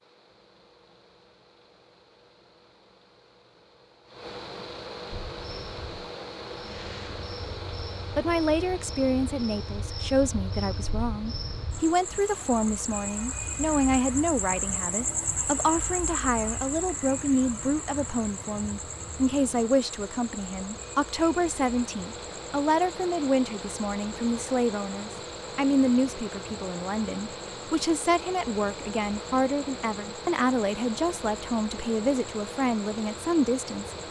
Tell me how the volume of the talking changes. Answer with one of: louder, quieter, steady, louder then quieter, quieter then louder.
steady.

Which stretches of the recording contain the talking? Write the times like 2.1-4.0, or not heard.
8.2-34.0.